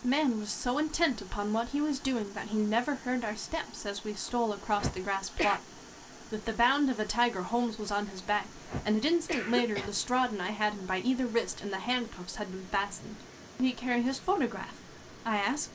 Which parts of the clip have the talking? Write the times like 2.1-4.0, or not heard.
0.0-15.6.